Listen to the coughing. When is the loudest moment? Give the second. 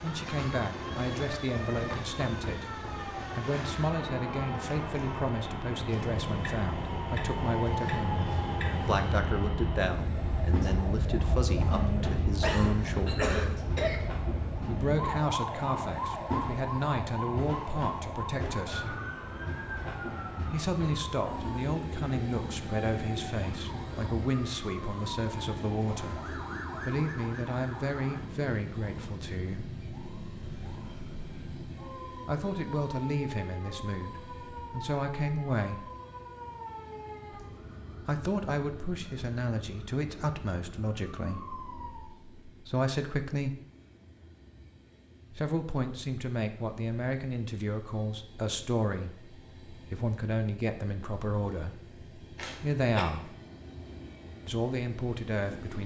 13 s.